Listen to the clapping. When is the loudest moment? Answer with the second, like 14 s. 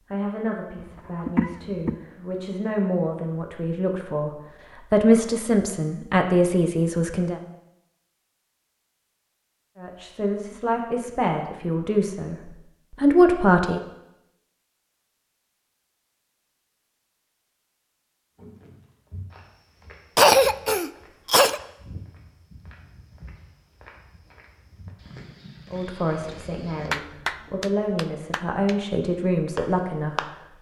27 s.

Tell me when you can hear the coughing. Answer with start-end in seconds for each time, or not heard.
0.8-1.9, 20.1-21.6.